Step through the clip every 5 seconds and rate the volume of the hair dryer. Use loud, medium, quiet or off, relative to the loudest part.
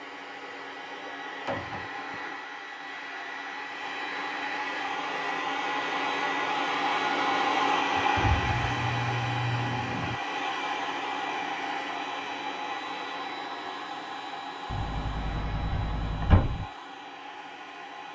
medium, loud, medium, quiet.